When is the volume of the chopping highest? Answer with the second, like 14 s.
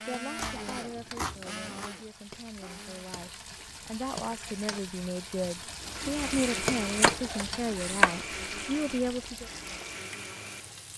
8 s.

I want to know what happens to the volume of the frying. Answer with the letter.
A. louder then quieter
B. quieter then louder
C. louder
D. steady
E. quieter
A.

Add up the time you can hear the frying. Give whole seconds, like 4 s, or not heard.
11 s.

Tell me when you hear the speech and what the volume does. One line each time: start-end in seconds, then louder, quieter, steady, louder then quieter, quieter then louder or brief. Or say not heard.
0.0-9.5 louder.